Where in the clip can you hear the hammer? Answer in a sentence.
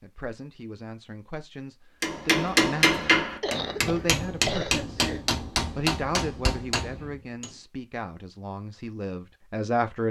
The hammer can be heard from 2.0 to 7.5 s.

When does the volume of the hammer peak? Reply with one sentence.
The volume of the hammer peaks at 3 seconds.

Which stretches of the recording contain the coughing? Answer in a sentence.
The coughing can be heard from 3.4 to 5.2 s.